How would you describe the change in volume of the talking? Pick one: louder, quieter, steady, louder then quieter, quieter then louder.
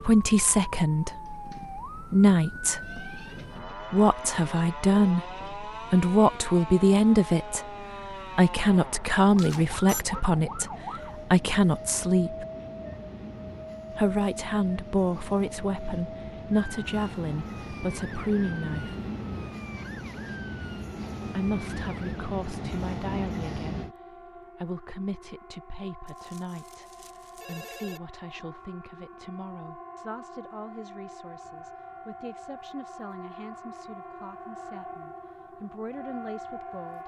quieter.